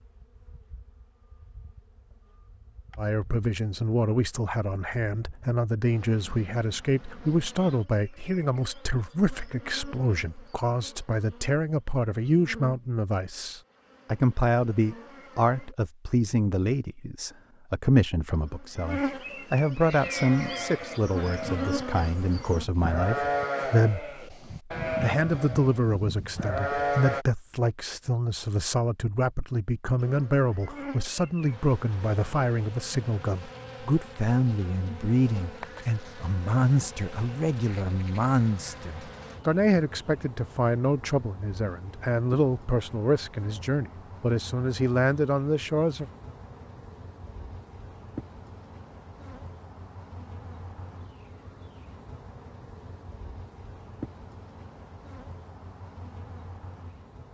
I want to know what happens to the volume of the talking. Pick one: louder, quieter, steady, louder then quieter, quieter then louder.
steady.